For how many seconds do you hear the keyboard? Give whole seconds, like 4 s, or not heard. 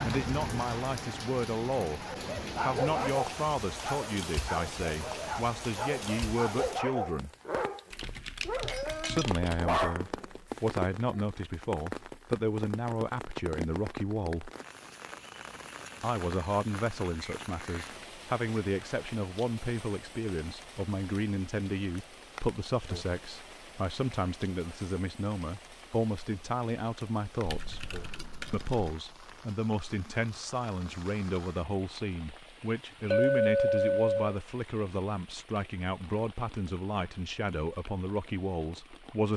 3 s.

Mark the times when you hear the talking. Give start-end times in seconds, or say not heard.
0.1-7.3, 8.9-14.5, 16.0-27.9, 28.5-39.3.